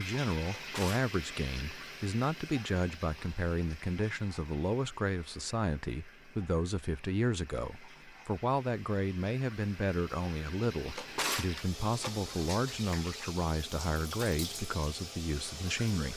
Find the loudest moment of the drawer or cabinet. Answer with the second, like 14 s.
11 s.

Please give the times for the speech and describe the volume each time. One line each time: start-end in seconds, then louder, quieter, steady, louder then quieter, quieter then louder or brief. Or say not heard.
0.0-16.1 steady.